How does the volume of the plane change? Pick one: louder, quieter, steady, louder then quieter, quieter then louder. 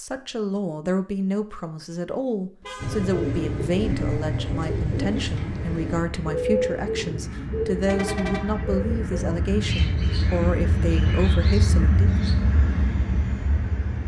louder.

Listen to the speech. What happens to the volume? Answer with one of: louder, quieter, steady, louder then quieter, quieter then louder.
steady.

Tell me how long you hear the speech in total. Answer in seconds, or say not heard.
12 s.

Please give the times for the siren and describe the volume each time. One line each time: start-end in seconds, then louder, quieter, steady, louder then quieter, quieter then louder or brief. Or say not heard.
not heard.